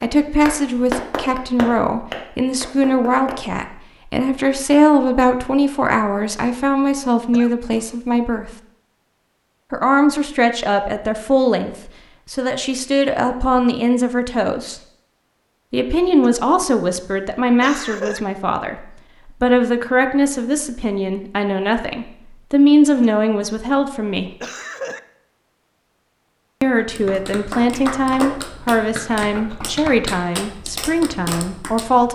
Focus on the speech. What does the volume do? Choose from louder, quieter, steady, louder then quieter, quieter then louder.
steady.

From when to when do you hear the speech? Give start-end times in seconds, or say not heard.
0.0-8.5, 9.7-14.8, 15.7-24.3, 26.6-32.0.